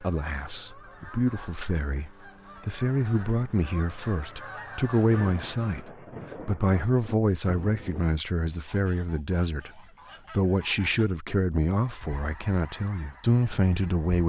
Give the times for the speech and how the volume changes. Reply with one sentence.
You can hear the speech from 0.0 to 14.2 s, at a steady volume.